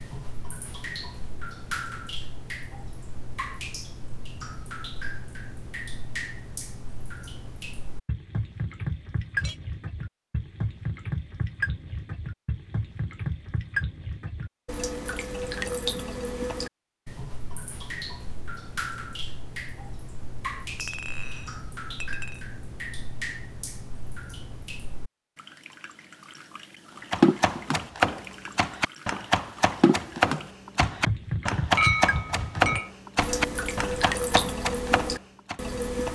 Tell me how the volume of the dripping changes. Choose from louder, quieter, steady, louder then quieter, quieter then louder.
louder.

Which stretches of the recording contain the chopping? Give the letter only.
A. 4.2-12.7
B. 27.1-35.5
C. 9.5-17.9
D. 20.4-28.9
B.